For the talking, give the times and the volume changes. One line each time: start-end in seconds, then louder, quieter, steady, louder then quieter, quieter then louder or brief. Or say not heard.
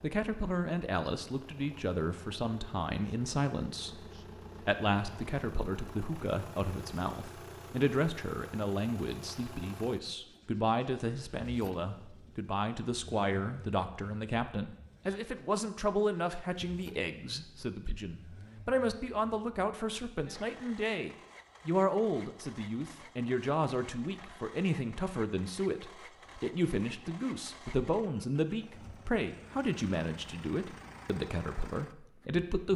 0.0-32.7 steady.